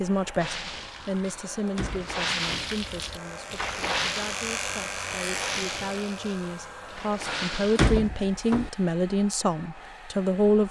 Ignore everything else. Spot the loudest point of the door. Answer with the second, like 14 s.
8 s.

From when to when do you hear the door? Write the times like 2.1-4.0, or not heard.
1.2-2.7, 7.2-8.7.